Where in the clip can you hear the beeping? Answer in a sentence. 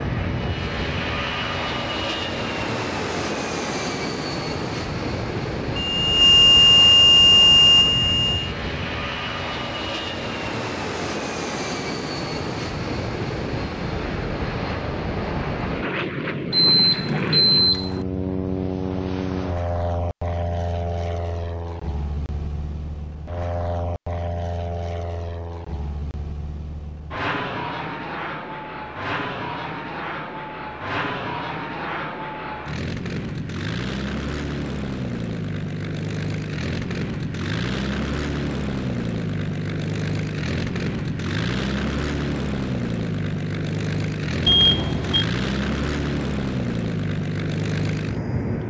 The beeping can be heard from 5.8 to 8.5 s, from 16.5 to 18.1 s and from 44.5 to 45.2 s.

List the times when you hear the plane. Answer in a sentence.
You can hear the plane from 0.0 to 48.6 s.